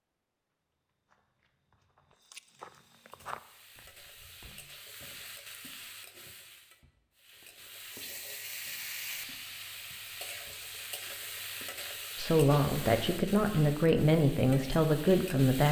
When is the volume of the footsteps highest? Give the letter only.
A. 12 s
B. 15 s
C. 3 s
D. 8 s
C.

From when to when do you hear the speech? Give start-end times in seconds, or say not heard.
12.2-15.6.